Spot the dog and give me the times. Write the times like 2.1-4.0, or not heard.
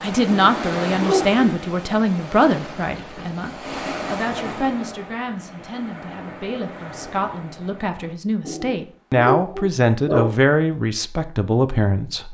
0.2-1.4, 8.4-10.3.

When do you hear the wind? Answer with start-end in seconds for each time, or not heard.
0.0-8.2.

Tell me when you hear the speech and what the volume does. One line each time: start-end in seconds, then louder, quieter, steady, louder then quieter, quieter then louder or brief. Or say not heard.
0.0-12.2 quieter then louder.